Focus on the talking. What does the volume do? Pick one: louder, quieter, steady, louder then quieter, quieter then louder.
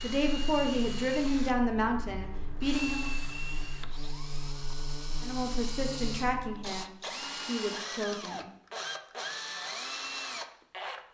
quieter.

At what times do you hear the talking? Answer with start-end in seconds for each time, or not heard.
0.0-3.1, 5.2-8.5.